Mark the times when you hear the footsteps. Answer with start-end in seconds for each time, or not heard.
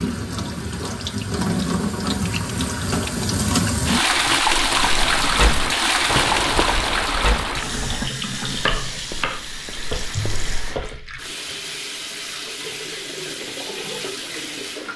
4.5-10.9.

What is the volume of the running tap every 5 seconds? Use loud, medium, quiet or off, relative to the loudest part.
loud, loud, medium.